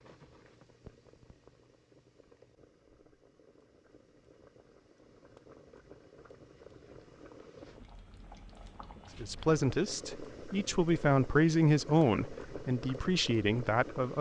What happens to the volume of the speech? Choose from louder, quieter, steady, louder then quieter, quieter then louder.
louder then quieter.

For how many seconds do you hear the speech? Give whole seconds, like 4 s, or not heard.
5 s.